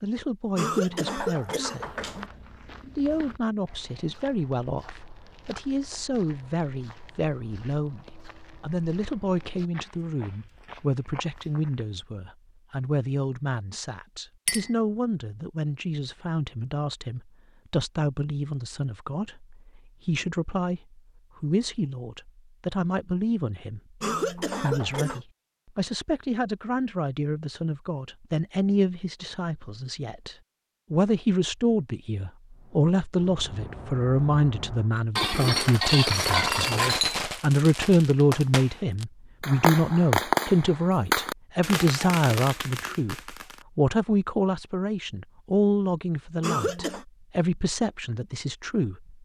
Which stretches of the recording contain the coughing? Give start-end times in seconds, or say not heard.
0.6-2.3, 24.0-25.2, 46.4-47.0.